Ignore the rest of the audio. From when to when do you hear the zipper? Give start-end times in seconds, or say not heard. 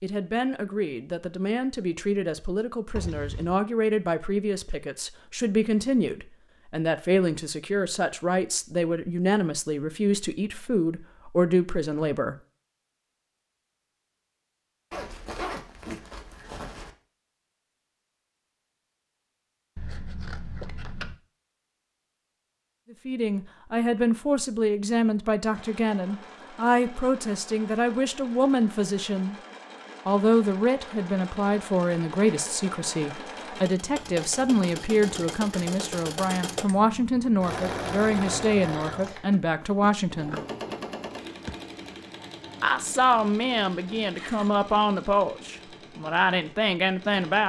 14.9-16.9, 44.0-44.5.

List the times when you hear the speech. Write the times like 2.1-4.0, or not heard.
0.0-12.3, 23.1-29.4, 30.1-40.4, 42.6-47.4.